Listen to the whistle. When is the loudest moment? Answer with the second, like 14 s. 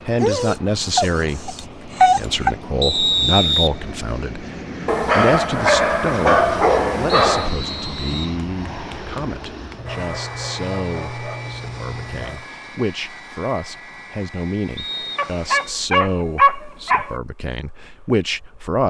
3 s.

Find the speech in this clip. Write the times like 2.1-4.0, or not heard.
0.1-18.8.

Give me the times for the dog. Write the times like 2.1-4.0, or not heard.
0.1-2.5, 4.8-7.5, 9.8-12.4, 15.2-17.1.